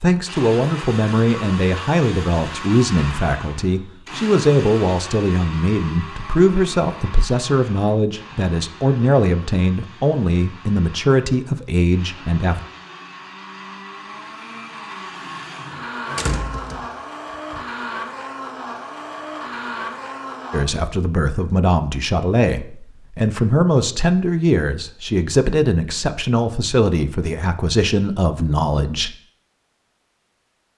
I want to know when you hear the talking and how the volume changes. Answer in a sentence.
The talking can be heard from 0.0 to 12.6 s, at a steady volume; and from 20.5 to 29.1 s, at a steady volume.